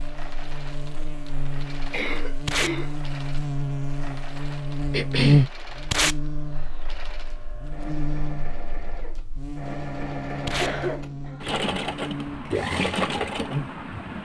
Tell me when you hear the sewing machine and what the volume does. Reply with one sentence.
You can hear the sewing machine from 0.0 to 14.2 s, getting louder.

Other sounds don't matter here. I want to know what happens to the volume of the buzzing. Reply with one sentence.
The volume of the buzzing goes up, then down.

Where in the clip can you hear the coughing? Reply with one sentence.
The coughing can be heard from 1.9 to 2.9 s, from 4.9 to 5.5 s and from 10.6 to 11.4 s.